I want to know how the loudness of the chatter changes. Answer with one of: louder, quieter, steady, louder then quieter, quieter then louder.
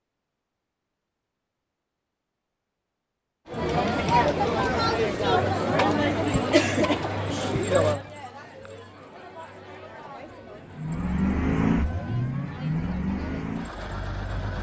quieter.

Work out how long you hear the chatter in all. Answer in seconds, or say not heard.
11 s.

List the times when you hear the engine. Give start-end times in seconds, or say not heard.
10.6-14.5.